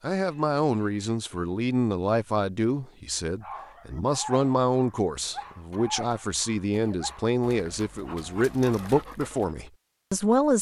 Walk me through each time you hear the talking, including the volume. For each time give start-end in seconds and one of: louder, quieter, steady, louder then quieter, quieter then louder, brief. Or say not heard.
0.0-10.5 steady.